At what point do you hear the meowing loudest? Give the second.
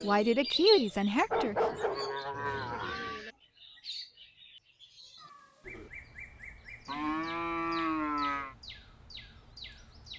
3 s.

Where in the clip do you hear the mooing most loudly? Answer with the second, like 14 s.
8 s.